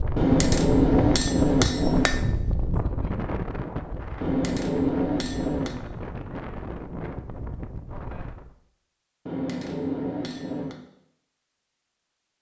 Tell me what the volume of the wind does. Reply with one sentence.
The loudness of the wind goes down.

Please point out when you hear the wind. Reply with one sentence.
You can hear the wind from 0.0 to 8.6 s.